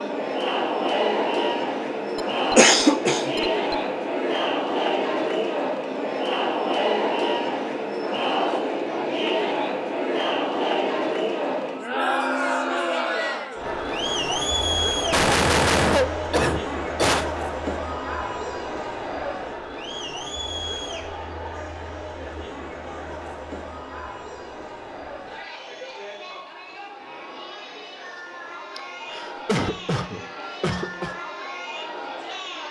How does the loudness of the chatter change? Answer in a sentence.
The loudness of the chatter goes down.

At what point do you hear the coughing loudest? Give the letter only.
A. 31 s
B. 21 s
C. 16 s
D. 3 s
D.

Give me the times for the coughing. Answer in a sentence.
You can hear the coughing from 2.1 to 3.8 s, from 15.1 to 17.2 s and from 28.8 to 31.1 s.